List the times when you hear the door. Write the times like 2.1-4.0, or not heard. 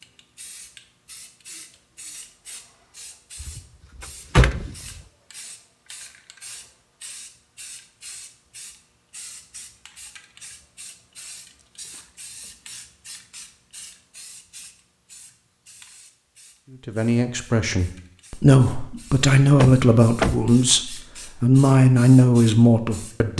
3.4-5.0, 19.6-20.4.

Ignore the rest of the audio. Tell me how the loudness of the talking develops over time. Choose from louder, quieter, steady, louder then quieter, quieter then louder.
louder.